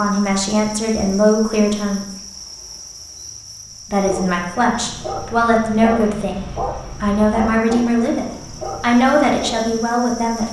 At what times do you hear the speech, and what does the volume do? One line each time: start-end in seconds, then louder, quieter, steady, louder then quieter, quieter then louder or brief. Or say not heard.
0.0-2.0 brief
3.9-10.4 steady.